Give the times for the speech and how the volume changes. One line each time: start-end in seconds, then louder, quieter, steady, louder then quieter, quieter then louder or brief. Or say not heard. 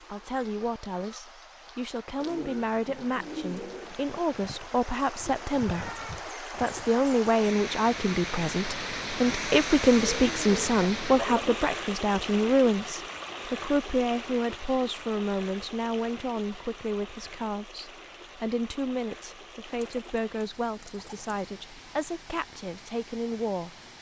0.0-23.8 louder then quieter.